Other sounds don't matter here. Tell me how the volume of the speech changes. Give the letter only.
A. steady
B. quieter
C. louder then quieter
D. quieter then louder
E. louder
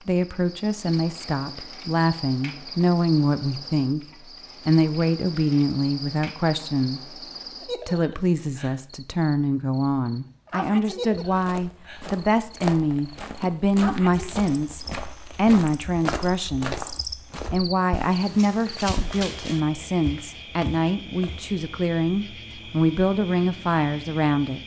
A.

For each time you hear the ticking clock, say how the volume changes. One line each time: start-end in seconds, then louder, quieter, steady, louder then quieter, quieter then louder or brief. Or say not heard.
not heard.